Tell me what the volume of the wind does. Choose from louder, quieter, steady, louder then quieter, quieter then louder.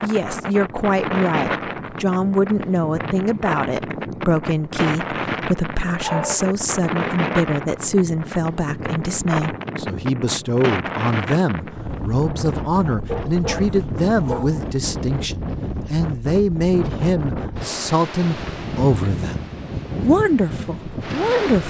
steady.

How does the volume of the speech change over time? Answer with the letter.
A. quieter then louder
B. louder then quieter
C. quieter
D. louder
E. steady
E.